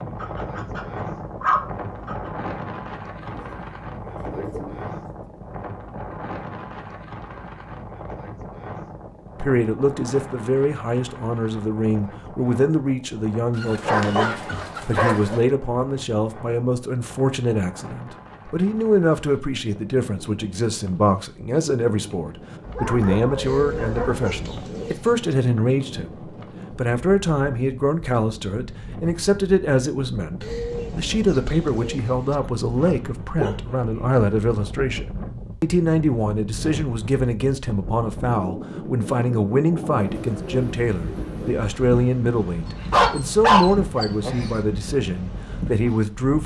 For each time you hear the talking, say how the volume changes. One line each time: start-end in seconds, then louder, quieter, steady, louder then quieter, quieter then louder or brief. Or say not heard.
9.3-46.4 steady.